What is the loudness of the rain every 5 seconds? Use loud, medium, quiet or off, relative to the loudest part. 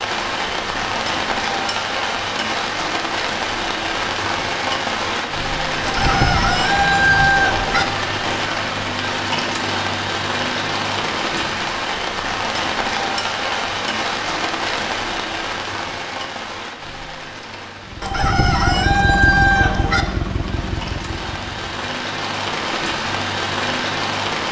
loud, loud, loud, medium, loud.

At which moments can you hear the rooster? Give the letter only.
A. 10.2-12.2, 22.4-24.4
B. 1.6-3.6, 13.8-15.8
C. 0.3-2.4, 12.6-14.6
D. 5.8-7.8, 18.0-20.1
D.